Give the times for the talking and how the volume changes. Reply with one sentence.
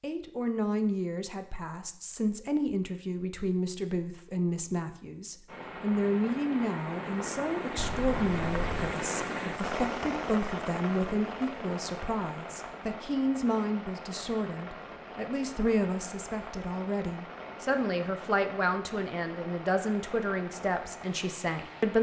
You can hear the talking from 0.0 to 21.9 s, at a steady volume.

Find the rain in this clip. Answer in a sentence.
The rain can be heard from 5.5 to 21.9 s.